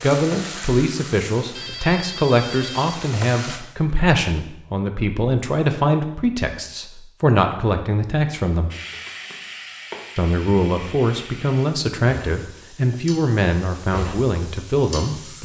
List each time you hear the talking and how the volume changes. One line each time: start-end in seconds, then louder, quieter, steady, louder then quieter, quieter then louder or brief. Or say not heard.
0.0-8.7 steady
10.2-15.4 steady.